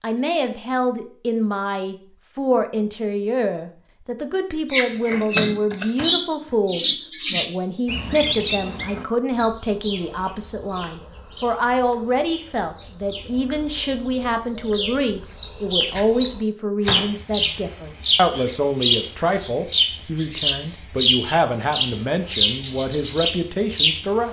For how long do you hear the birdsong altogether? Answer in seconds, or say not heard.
19 s.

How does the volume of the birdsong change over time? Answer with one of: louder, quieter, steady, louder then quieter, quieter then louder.
quieter then louder.